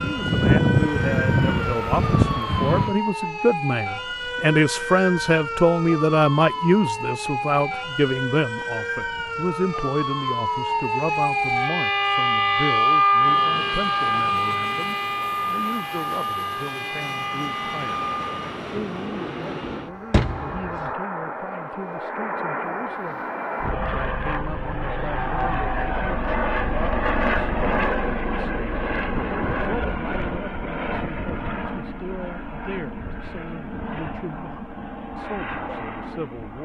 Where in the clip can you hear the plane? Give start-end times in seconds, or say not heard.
0.0-3.0, 13.2-36.5.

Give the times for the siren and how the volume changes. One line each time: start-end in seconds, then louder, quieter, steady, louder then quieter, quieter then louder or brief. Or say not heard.
0.0-18.5 louder then quieter.